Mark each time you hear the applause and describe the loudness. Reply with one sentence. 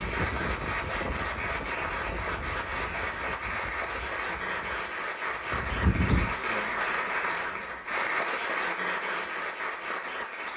You can hear the applause from 0.0 to 10.5 s, at a steady volume.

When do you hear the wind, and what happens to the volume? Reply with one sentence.
You can hear the wind from 0.0 to 6.4 s, getting quieter then louder.